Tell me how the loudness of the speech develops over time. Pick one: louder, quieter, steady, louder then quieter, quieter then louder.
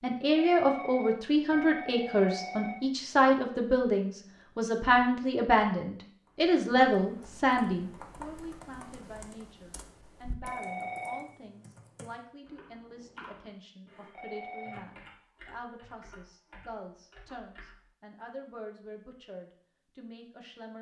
quieter.